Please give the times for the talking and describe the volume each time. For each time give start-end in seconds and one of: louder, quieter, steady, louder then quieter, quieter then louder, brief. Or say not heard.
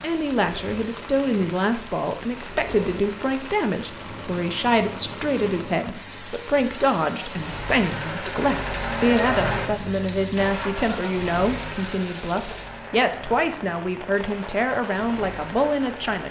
0.0-16.2 steady.